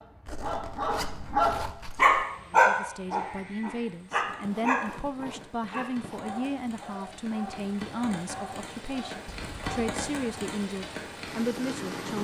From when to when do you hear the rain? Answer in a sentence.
You can hear the rain from 2.2 to 12.1 s.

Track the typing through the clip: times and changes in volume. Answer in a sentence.
You can't hear the typing here.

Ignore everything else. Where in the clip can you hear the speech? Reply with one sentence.
The speech can be heard from 2.5 to 12.1 s.